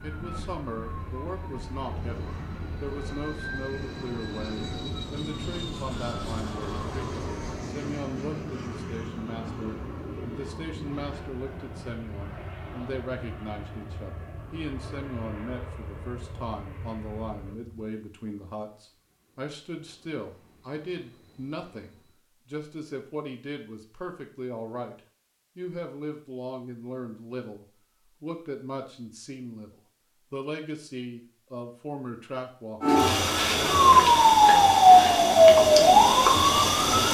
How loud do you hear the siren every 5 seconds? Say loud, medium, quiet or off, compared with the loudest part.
quiet, quiet, off, off, off, off, loud, loud.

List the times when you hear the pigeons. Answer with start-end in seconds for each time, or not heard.
not heard.